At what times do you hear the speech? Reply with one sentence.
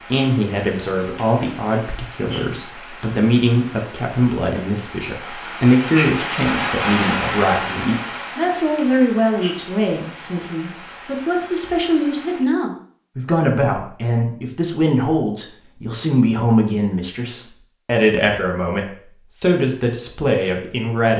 The speech can be heard from 0.1 to 21.1 s.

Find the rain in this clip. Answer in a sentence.
You can hear the rain from 0.0 to 12.4 s.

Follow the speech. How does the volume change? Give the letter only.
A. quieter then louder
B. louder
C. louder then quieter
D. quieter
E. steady
E.